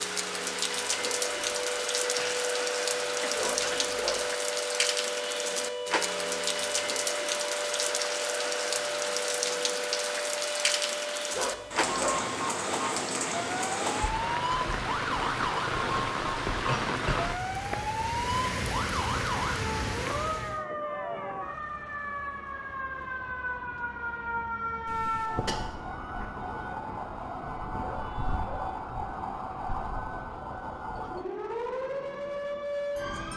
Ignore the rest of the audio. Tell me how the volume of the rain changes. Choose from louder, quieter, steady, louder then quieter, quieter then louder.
steady.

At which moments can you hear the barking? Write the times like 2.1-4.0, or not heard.
3.4-4.3, 11.3-12.2, 27.8-28.8.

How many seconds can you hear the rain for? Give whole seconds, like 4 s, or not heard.
21 s.